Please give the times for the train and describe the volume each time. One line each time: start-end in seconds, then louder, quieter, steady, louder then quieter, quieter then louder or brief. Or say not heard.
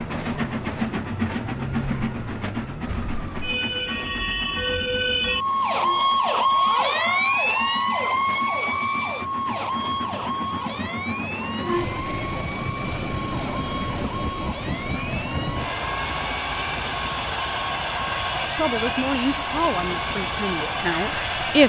0.0-21.6 quieter then louder.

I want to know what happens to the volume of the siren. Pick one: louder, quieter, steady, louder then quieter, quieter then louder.
louder then quieter.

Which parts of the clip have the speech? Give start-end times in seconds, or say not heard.
18.5-21.6.